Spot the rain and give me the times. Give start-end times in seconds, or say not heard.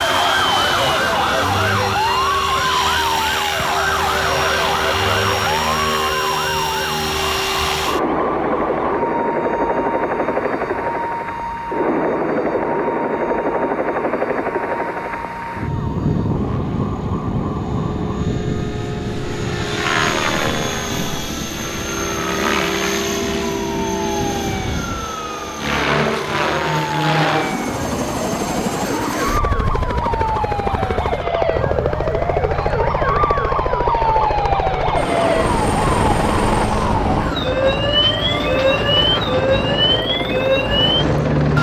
not heard.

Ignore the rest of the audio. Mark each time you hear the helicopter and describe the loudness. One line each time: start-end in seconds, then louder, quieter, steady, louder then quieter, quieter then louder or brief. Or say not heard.
0.0-41.5 steady.